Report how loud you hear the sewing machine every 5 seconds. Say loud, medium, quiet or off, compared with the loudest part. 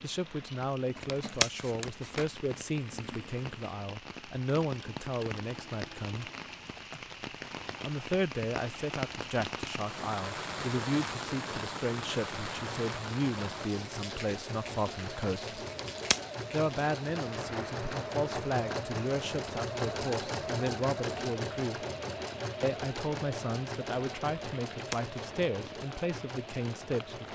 quiet, quiet, medium, loud, loud, medium.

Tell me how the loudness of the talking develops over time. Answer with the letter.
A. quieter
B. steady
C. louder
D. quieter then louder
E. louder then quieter
B.